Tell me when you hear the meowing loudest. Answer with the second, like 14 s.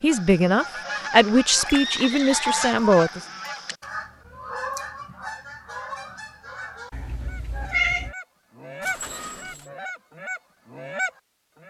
8 s.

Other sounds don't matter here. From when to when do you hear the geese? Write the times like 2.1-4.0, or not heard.
0.1-11.6.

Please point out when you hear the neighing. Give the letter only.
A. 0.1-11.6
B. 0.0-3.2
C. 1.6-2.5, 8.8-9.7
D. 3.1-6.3
C.